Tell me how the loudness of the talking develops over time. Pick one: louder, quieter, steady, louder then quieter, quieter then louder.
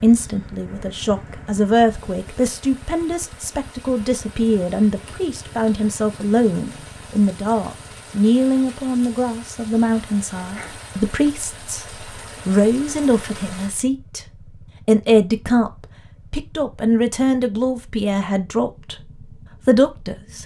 steady.